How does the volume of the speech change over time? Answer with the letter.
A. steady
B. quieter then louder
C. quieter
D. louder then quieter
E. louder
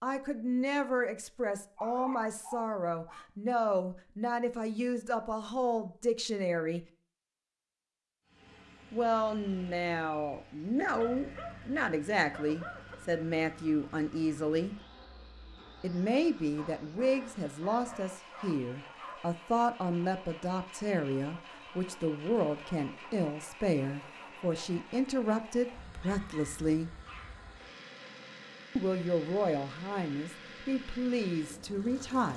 A.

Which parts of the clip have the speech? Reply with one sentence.
The speech can be heard from 0.0 to 6.8 s, from 8.9 to 14.8 s, from 15.8 to 26.9 s and from 28.8 to 32.3 s.